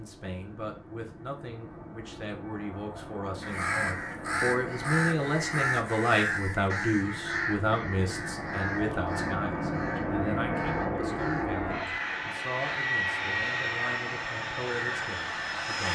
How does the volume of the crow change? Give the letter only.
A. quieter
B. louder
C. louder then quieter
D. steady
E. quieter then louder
A.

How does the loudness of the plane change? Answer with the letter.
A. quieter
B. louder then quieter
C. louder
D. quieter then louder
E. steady
C.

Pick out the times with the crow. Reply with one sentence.
You can hear the crow from 3.4 to 15.4 s.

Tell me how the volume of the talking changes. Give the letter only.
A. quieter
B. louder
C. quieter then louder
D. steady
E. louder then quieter
E.